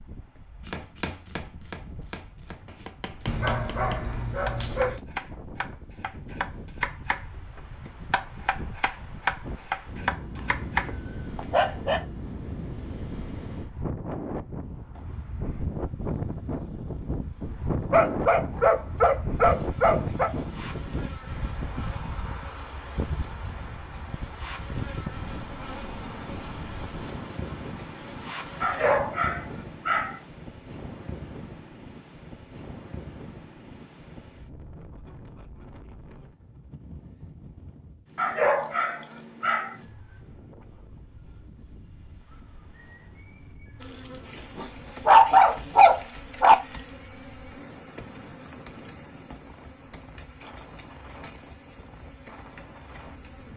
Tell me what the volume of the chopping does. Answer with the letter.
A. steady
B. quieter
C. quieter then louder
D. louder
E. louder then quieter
D.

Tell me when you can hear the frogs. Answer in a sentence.
You can't hear the frogs here.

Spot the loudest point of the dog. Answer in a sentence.
The loudest moment of the dog is at 45 seconds.